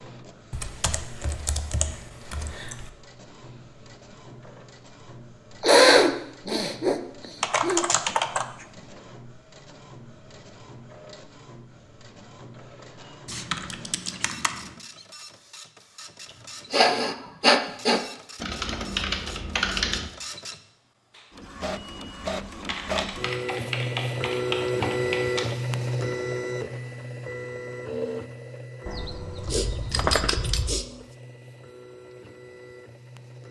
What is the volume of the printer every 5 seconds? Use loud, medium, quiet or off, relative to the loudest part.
quiet, quiet, quiet, quiet, loud, loud, quiet.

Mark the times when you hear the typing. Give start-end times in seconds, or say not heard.
0.5-2.9, 7.4-8.4, 13.2-14.6, 18.4-20.1, 22.6-25.6, 28.9-30.8.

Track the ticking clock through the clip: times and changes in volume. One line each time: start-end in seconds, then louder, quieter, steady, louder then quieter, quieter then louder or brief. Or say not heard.
not heard.